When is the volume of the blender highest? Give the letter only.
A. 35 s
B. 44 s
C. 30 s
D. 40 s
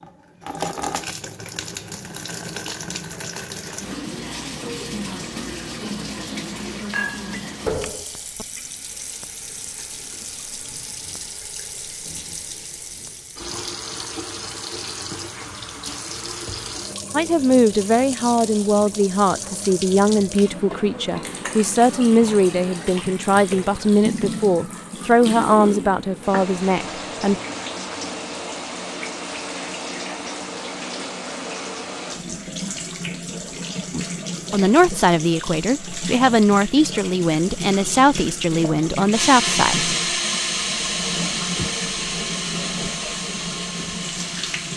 D.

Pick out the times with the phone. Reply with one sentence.
You can't hear the phone here.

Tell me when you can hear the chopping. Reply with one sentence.
You can't hear the chopping here.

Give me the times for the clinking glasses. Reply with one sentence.
You can hear the clinking glasses from 6.9 to 7.8 s.